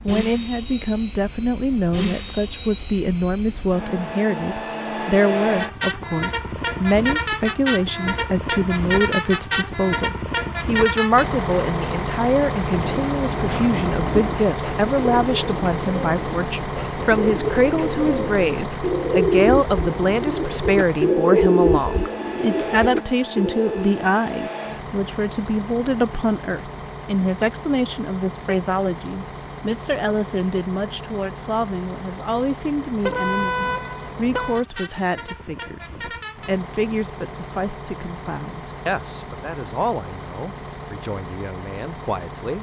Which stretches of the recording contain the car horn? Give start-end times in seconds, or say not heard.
33.0-34.6.